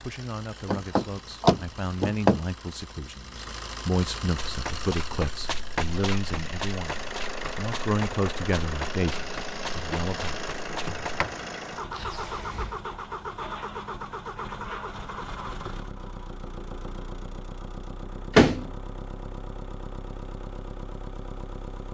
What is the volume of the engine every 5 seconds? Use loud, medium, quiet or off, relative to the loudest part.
medium, loud, loud, medium, medium.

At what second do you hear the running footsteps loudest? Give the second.
6 s.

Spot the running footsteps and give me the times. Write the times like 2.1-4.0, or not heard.
4.3-11.2.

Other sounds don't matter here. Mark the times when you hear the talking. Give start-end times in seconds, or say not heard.
0.0-10.4.